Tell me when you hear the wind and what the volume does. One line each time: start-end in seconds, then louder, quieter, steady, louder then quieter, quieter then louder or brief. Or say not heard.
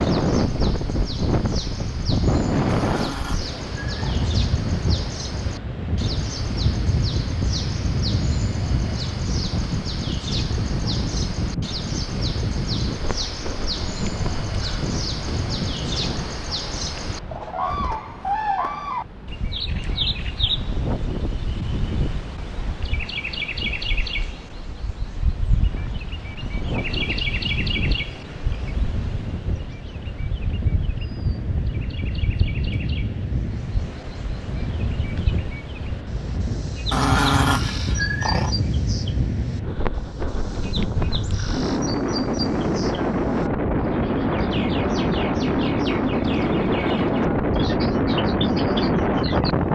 0.0-49.7 quieter then louder.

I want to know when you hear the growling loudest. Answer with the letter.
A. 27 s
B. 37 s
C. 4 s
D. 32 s
B.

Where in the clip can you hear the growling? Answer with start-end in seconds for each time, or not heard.
2.7-4.3, 36.9-38.5.